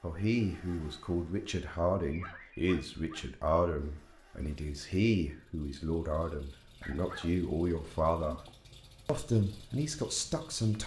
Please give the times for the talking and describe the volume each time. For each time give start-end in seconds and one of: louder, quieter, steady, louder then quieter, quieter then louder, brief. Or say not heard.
0.0-8.4 steady
9.1-10.8 brief.